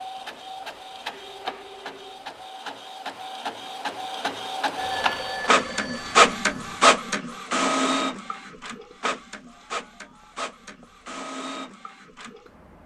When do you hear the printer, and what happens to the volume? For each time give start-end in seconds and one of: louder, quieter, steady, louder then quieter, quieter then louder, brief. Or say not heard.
0.0-12.8 louder then quieter.